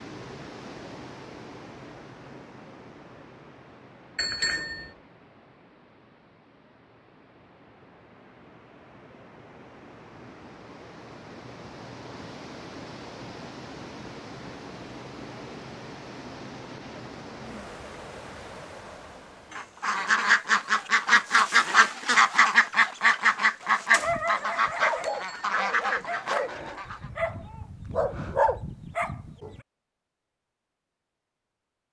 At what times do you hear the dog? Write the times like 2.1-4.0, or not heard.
23.9-29.6.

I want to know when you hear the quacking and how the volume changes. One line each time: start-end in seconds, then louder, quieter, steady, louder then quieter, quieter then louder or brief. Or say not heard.
19.5-27.1 quieter.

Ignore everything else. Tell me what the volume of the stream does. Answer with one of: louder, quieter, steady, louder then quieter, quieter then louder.
quieter then louder.